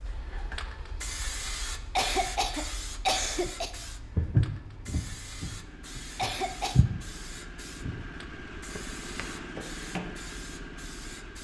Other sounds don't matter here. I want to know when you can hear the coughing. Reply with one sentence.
You can hear the coughing from 1.9 to 3.7 s and from 6.2 to 6.8 s.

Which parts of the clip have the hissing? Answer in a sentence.
You can hear the hissing from 0.0 to 11.3 s.